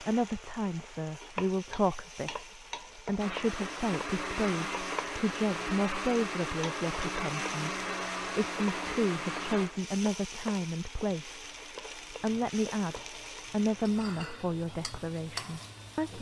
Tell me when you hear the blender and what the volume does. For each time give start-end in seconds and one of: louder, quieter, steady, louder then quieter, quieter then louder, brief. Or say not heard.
3.1-16.1 quieter.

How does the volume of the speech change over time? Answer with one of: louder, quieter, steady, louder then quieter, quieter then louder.
steady.